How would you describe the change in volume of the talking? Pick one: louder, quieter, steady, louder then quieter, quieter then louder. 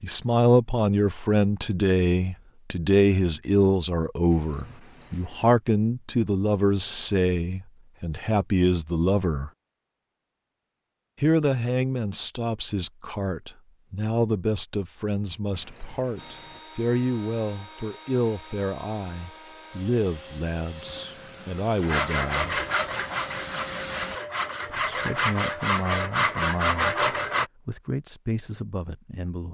quieter.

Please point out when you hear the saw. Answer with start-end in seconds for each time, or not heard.
21.8-27.5.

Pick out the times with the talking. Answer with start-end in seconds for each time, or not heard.
0.0-9.5, 11.2-22.6, 24.7-29.4.